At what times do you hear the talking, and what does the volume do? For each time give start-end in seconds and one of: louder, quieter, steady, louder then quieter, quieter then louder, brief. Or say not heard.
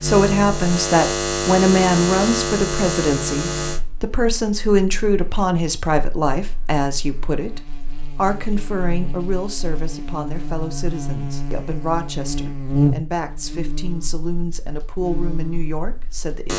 0.0-16.5 quieter.